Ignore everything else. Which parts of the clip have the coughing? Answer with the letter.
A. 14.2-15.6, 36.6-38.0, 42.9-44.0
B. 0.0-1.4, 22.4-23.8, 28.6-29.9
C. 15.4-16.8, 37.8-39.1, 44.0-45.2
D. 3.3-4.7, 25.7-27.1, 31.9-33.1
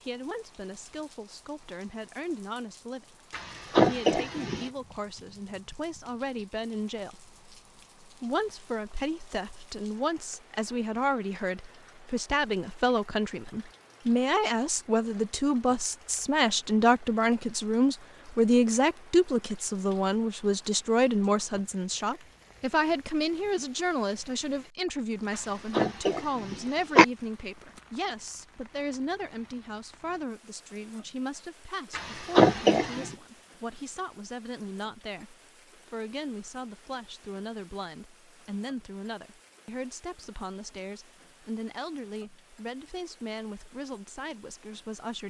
D.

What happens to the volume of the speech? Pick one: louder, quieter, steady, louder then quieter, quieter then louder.
louder then quieter.